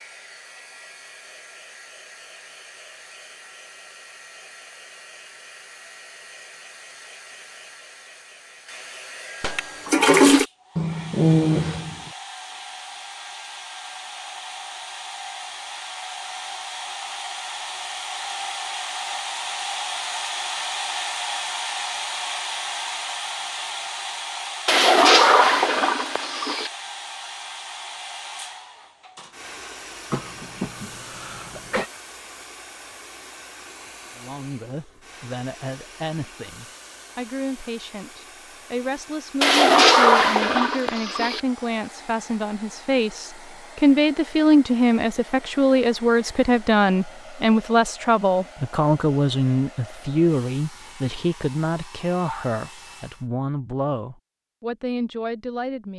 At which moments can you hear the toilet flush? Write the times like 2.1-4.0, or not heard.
9.4-10.4, 24.6-26.7, 39.4-41.4.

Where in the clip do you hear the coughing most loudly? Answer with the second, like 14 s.
11 s.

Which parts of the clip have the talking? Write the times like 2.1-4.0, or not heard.
34.1-55.9.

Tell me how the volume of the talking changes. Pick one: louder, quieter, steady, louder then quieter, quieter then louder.
louder then quieter.